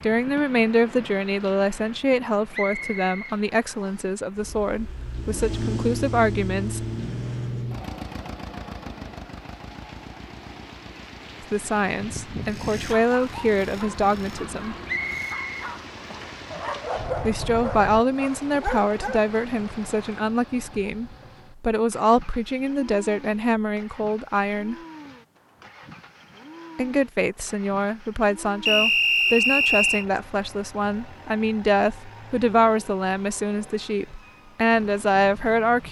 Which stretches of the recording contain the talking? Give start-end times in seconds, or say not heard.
0.0-6.8, 11.5-14.8, 17.2-24.8, 26.8-35.8.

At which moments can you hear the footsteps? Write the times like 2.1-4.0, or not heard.
not heard.